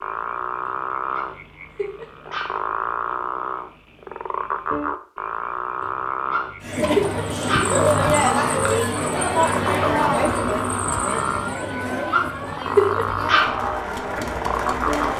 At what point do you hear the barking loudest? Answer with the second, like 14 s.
13 s.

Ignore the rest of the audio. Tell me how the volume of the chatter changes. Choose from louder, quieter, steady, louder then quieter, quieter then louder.
quieter.